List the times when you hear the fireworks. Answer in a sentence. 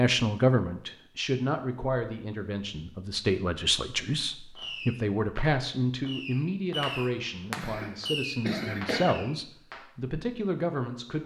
The fireworks can be heard from 4.5 to 9.8 s.